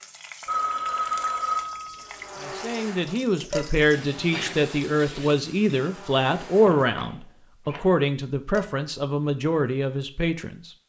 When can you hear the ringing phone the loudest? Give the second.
1 s.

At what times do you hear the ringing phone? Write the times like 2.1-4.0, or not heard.
0.5-2.5, 6.7-7.9.